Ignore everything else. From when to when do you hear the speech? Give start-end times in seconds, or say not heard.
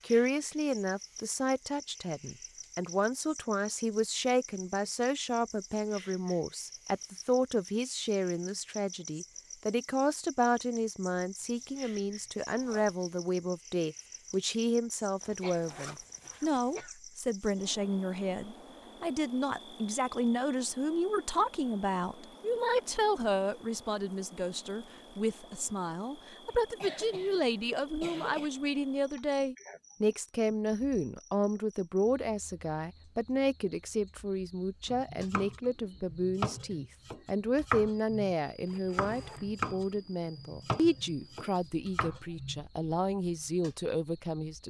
0.1-44.6.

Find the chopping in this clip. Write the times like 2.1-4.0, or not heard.
34.9-42.6.